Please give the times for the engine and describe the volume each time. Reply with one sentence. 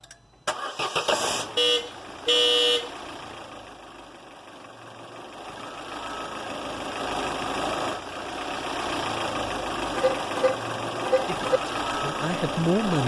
You can hear the engine from 0.0 to 13.0 s, getting quieter then louder.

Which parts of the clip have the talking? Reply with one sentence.
The talking can be heard from 11.2 to 13.0 s.